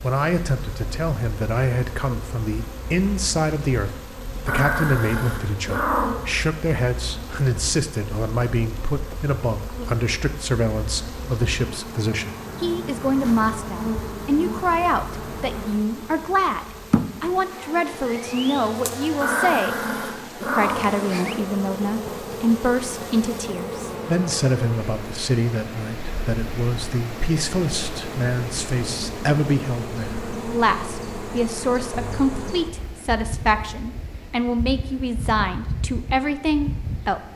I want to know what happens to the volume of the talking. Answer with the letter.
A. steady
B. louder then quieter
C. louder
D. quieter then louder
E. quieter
A.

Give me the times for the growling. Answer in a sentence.
The growling can be heard from 4.5 to 6.3 s and from 19.2 to 20.9 s.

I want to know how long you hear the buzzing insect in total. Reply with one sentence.
The buzzing insect can be heard for 37 seconds in total.